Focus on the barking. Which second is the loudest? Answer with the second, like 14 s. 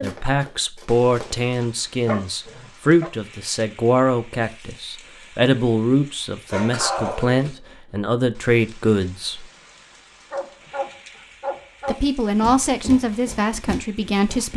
7 s.